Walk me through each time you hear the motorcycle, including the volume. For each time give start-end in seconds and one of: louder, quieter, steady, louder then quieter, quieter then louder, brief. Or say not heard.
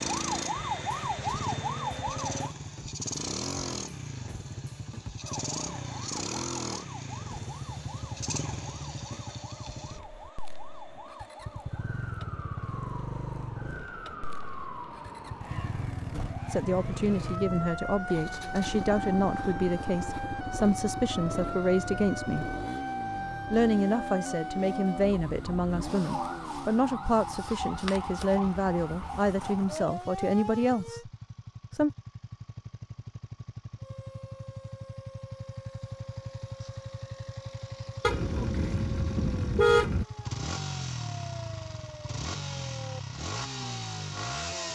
0.0-44.7 quieter then louder.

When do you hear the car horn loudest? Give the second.
40 s.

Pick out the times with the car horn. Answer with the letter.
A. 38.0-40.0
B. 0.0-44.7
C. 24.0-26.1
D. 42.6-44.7
A.